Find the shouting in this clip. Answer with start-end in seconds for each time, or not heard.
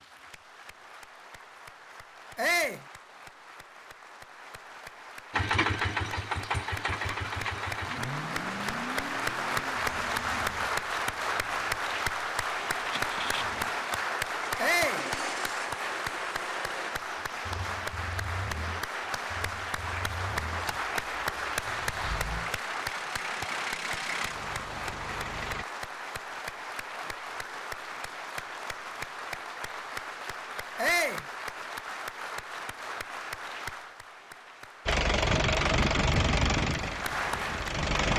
2.4-2.9, 14.6-15.1, 30.8-31.2.